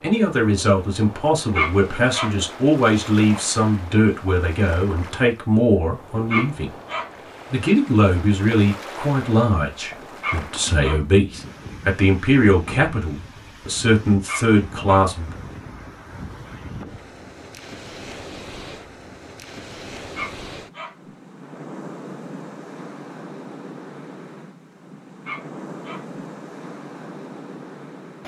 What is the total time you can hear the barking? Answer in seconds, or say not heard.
6 s.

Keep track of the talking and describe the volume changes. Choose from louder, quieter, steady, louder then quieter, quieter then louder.
steady.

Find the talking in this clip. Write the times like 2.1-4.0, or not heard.
0.0-6.8, 7.5-15.3.